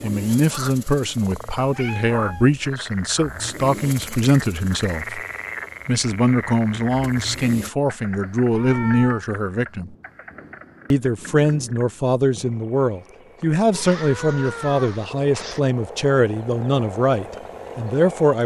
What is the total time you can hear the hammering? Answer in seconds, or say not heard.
not heard.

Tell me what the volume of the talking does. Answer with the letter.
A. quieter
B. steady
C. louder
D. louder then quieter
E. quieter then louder
B.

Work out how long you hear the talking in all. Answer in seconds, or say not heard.
17 s.